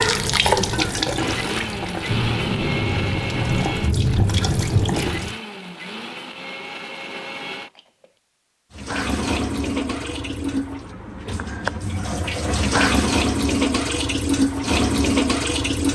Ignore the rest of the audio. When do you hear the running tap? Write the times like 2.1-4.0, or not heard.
0.0-5.3, 8.8-15.8.